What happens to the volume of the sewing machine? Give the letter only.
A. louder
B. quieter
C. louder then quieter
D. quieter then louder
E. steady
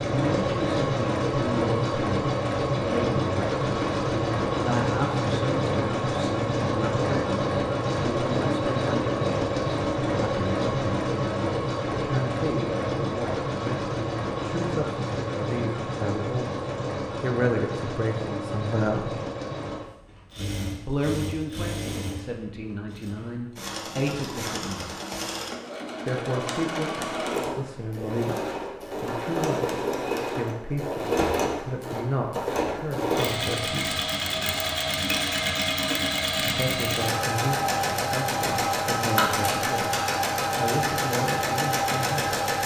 D.